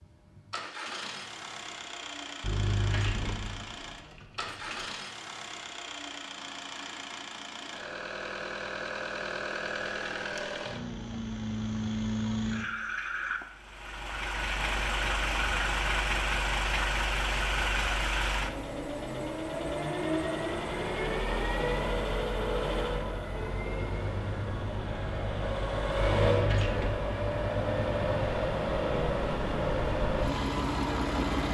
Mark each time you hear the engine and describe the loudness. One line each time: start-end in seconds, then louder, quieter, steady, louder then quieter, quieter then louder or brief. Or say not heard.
0.0-31.4 louder.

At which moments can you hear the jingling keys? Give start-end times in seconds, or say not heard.
2.4-4.9, 26.0-26.9.